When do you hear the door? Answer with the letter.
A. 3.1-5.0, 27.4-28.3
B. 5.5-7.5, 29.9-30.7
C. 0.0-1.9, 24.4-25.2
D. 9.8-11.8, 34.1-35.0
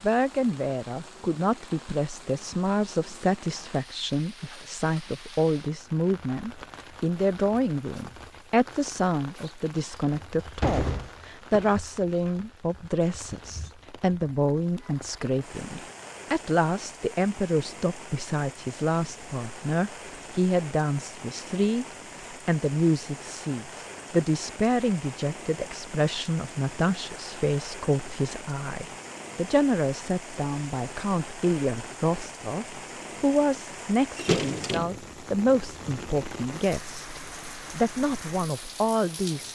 D.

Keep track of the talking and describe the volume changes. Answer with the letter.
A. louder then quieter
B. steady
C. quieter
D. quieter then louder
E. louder
B.